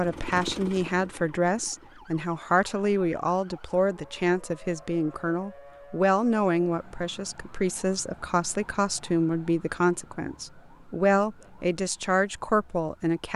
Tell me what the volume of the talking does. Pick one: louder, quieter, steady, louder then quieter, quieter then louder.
steady.